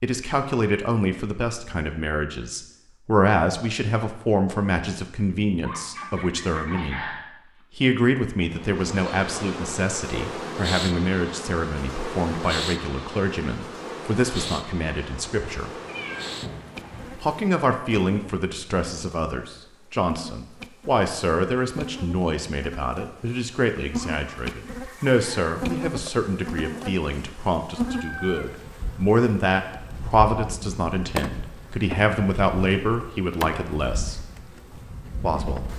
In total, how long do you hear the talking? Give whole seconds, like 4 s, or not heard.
33 s.